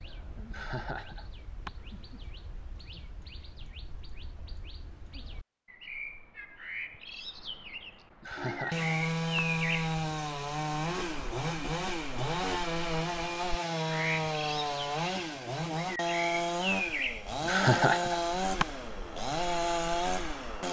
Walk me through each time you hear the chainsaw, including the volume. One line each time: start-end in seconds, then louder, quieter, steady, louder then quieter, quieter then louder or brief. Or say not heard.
8.3-20.6 steady.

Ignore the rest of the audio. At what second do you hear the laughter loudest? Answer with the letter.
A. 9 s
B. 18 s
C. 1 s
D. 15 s
B.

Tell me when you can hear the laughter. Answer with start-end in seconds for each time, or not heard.
0.5-1.7, 8.2-9.4, 17.4-18.6.